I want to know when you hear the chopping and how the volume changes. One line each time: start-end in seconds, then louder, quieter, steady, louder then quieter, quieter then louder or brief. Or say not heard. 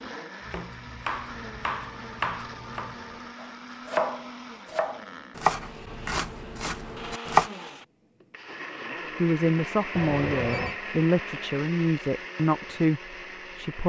0.4-7.5 louder then quieter.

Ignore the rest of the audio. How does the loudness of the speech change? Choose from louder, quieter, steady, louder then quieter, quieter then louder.
steady.